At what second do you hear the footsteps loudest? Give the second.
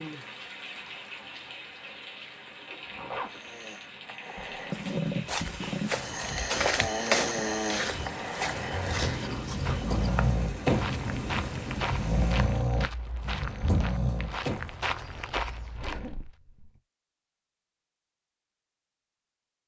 7 s.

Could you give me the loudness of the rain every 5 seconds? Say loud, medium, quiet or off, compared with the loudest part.
medium, loud, loud, off.